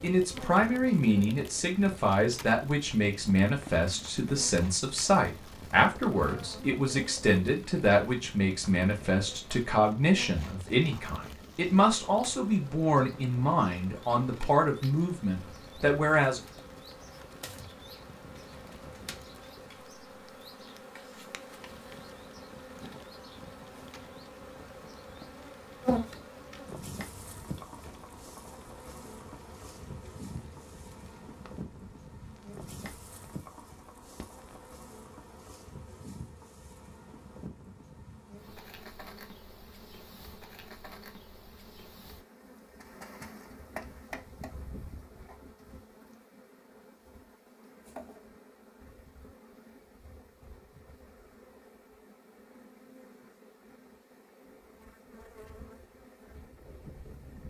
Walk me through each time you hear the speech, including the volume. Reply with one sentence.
The speech can be heard from 0.0 to 16.4 s, at a steady volume.